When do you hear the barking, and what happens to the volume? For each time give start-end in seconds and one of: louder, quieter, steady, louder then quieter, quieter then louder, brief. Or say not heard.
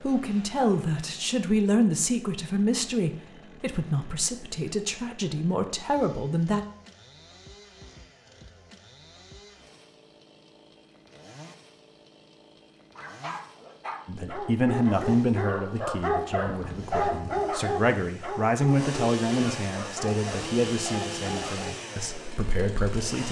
12.9-21.8 louder then quieter.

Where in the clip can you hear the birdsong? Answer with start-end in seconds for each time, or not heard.
not heard.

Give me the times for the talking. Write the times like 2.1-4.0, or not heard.
0.0-6.7, 14.1-23.2.